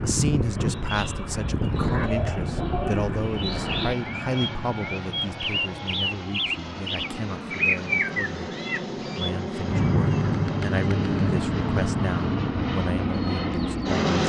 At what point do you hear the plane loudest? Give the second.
14 s.